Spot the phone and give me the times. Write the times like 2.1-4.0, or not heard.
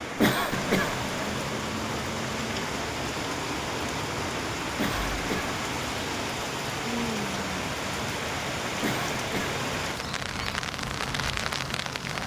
not heard.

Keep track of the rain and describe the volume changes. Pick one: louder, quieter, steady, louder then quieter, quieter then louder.
steady.